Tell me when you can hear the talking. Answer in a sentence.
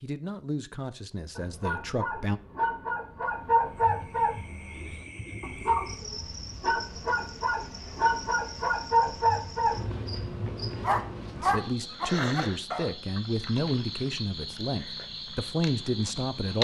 The talking can be heard from 0.0 to 2.4 s and from 11.3 to 16.5 s.